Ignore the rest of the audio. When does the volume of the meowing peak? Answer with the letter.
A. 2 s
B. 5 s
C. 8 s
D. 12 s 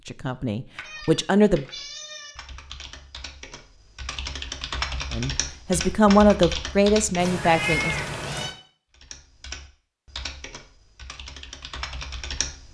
C.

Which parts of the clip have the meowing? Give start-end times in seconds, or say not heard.
0.8-2.4, 7.2-8.6.